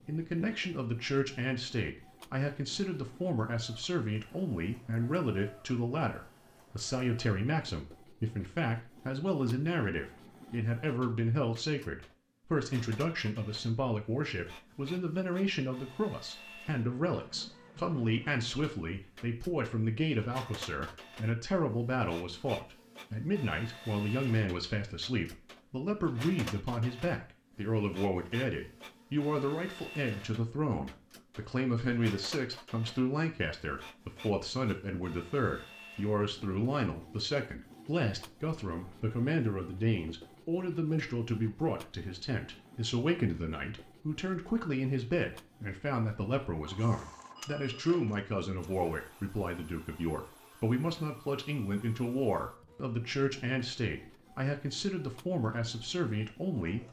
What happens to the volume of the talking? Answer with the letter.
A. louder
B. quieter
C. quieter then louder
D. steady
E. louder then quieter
D.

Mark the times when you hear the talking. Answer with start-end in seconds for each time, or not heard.
0.1-56.8.